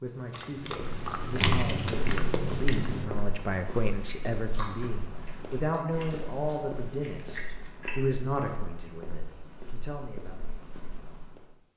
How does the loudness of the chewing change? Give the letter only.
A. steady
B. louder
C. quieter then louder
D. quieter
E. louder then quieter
C.